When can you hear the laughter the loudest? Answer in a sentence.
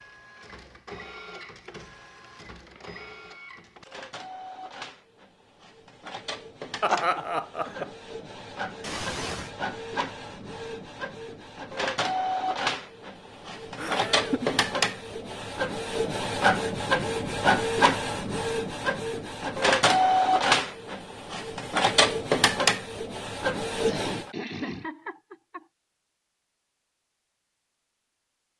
The loudest moment of the laughter is at 7 seconds.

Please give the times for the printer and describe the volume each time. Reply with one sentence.
The printer can be heard from 0.0 to 24.3 s, getting louder.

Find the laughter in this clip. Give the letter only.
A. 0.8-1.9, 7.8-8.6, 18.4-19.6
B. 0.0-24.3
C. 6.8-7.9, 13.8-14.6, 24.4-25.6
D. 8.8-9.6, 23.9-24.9
C.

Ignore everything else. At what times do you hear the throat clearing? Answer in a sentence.
The throat clearing can be heard from 8.8 to 9.6 s and from 23.9 to 24.9 s.